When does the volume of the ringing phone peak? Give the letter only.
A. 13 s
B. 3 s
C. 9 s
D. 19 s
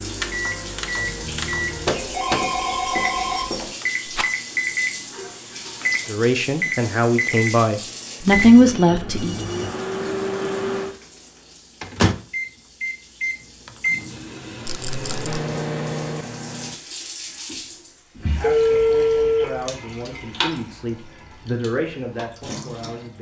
D.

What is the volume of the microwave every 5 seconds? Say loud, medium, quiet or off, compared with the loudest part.
loud, loud, loud, loud, off.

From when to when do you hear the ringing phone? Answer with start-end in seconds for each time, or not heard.
1.9-3.7, 8.3-9.7, 18.1-19.6.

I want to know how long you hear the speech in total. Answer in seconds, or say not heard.
8 s.